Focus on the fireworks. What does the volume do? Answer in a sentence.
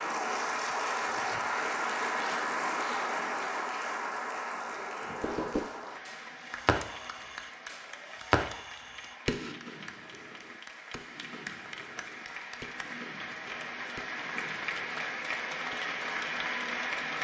The loudness of the fireworks goes down.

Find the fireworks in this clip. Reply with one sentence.
You can hear the fireworks from 5.0 to 15.8 s.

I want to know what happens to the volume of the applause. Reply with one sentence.
The volume of the applause goes down, then up.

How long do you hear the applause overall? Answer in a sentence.
The applause can be heard for 17 seconds in total.